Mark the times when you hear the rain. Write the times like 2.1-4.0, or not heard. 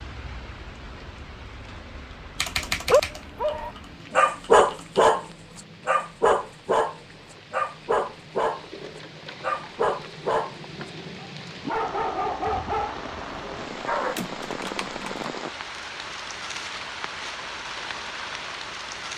0.0-19.1.